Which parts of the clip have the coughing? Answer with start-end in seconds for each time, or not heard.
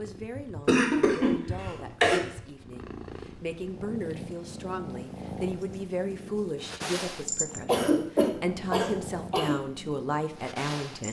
0.7-2.2, 7.7-9.6.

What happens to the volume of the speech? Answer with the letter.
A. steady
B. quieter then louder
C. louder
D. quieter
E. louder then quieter
C.